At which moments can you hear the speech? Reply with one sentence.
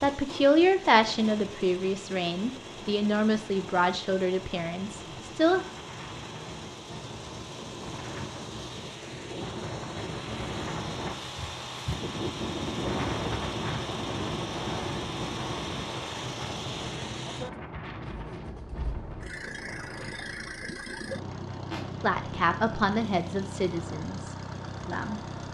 The speech can be heard from 0.0 to 5.7 s and from 22.0 to 25.5 s.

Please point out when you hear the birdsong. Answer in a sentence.
The birdsong can't be heard in this clip.